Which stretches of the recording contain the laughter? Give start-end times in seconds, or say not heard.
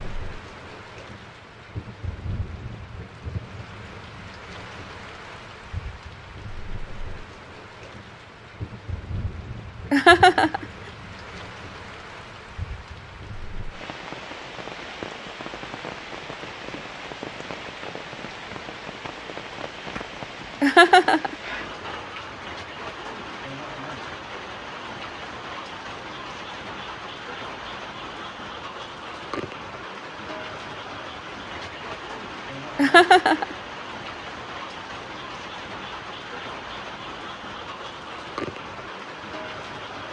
9.9-10.7, 20.6-21.4, 32.8-33.5.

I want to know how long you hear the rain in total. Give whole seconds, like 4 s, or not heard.
40 s.